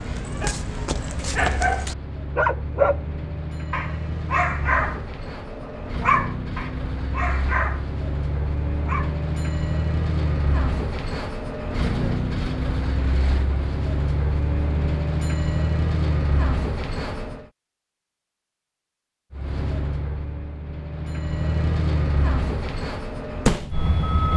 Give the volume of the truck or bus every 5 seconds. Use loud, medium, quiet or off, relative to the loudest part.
medium, loud, loud, loud, loud.